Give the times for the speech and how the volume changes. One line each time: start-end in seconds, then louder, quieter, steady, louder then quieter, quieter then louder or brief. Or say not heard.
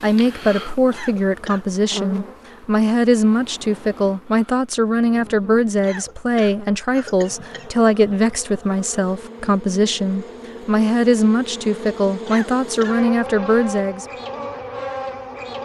0.0-14.1 steady.